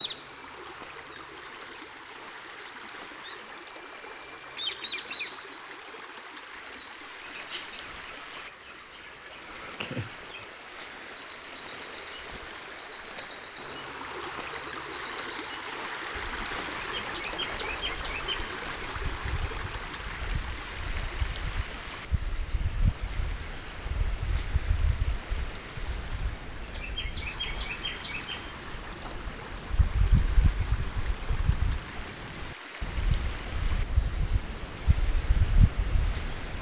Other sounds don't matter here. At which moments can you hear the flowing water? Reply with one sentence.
The flowing water can be heard from 0.0 to 36.5 s.